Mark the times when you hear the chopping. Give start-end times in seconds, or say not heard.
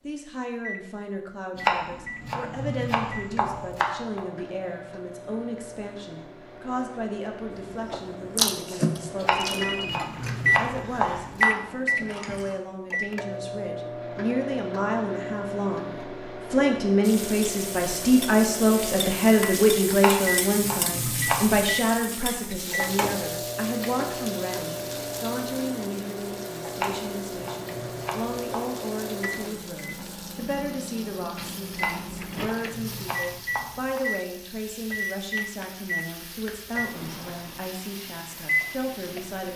1.6-4.2, 9.2-11.6, 19.9-21.6, 26.7-28.6, 31.7-34.0.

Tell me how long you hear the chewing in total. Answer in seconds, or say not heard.
5 s.